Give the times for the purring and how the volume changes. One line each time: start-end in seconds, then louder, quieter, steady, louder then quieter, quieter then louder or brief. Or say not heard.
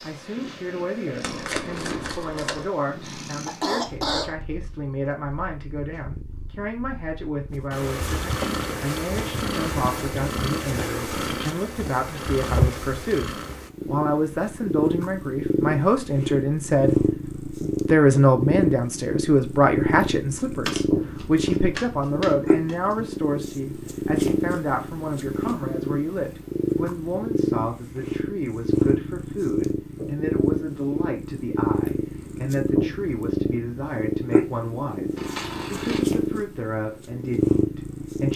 0.0-38.3 louder.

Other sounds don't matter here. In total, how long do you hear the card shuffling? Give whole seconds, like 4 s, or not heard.
5 s.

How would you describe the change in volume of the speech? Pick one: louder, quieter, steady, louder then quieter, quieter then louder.
louder then quieter.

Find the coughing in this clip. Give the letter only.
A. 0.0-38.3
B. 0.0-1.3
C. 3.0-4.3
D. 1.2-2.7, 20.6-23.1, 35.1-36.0
C.